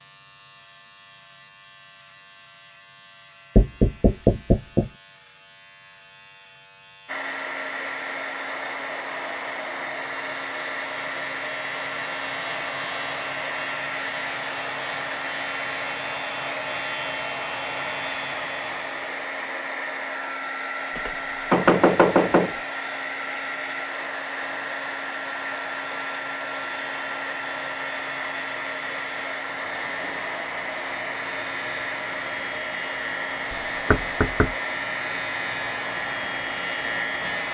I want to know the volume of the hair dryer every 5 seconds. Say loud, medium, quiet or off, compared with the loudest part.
off, loud, loud, loud, loud, loud, loud, loud.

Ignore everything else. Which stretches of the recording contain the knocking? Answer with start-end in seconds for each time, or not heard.
3.5-4.9, 20.9-22.6, 33.5-34.5.